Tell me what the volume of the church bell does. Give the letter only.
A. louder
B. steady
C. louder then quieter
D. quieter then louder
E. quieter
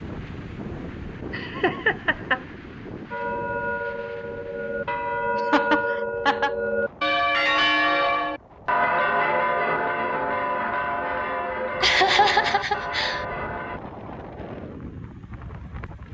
C.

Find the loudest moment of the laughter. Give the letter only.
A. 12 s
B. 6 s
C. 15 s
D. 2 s
A.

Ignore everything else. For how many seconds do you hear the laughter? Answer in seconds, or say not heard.
4 s.